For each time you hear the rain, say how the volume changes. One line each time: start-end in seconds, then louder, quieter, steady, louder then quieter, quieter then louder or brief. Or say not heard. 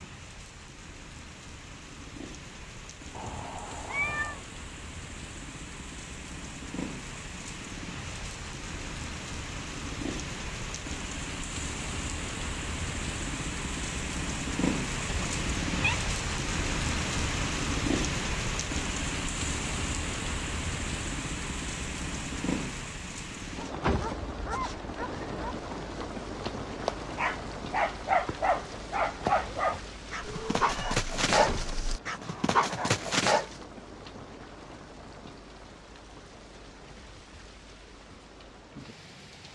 0.0-39.4 louder then quieter.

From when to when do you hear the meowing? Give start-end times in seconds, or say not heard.
3.1-4.4, 15.1-16.0, 30.2-32.0.